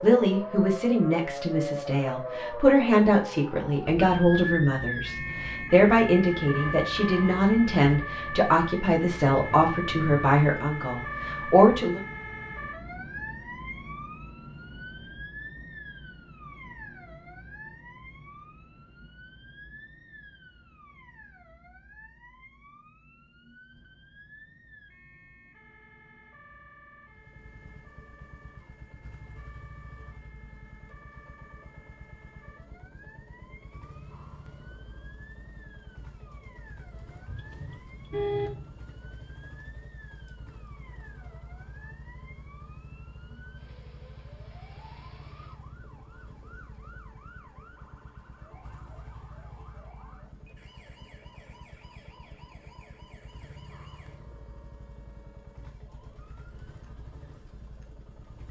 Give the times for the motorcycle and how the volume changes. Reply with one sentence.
You can hear the motorcycle from 27.1 to 58.4 s, at a steady volume.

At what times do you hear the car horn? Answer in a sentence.
You can hear the car horn from 6.5 to 7.5 s and from 37.2 to 38.8 s.